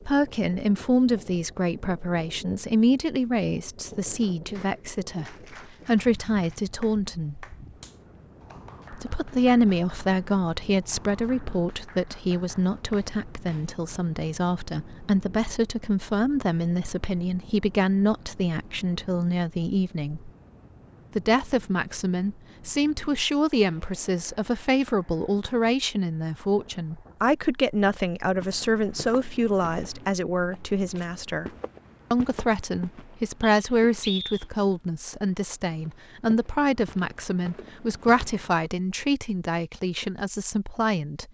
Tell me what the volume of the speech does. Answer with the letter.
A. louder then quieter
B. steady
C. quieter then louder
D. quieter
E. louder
B.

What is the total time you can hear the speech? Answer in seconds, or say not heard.
38 s.